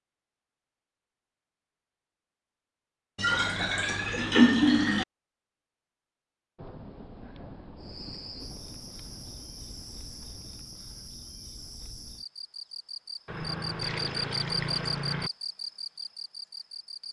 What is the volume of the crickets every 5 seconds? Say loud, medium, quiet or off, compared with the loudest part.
off, medium, loud, loud.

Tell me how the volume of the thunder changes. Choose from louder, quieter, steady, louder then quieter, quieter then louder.
quieter.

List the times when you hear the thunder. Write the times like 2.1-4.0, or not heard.
6.5-10.7.